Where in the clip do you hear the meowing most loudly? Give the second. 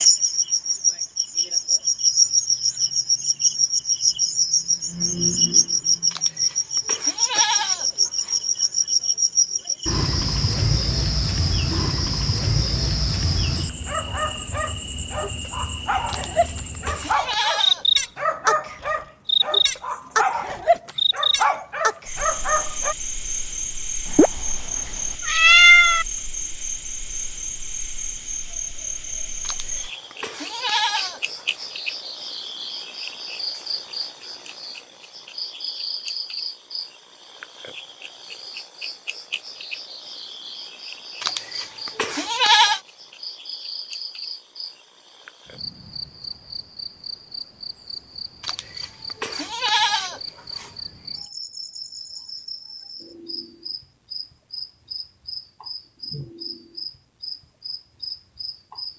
26 s.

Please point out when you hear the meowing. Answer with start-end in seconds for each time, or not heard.
24.1-26.1.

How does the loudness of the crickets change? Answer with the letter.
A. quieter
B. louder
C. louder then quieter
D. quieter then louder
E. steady
A.